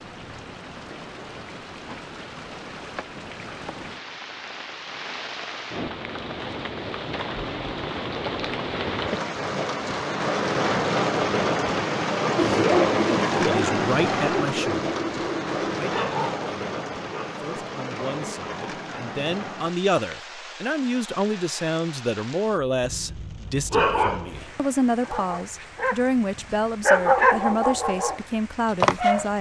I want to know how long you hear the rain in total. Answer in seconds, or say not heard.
29 s.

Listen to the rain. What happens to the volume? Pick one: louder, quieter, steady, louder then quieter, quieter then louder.
louder then quieter.